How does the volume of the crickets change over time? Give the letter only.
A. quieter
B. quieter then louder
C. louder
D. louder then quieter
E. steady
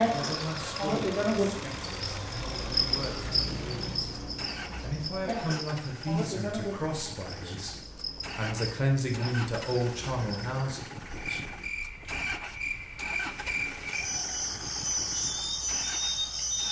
B.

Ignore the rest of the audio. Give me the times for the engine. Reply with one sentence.
You can hear the engine from 0.0 to 16.6 s.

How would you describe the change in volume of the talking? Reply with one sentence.
The loudness of the talking goes up.